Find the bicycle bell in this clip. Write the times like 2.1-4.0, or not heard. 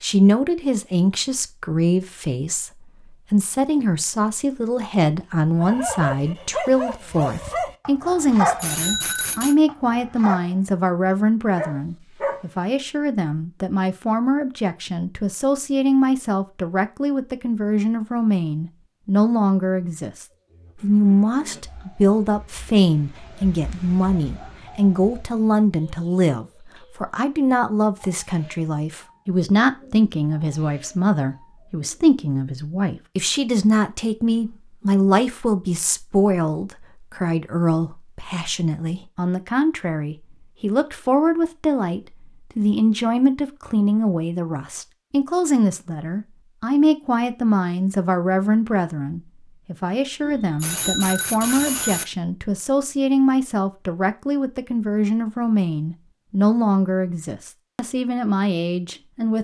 8.4-9.6, 50.2-52.0.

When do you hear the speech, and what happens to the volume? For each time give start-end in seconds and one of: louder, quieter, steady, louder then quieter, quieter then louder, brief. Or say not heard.
0.0-59.3 steady.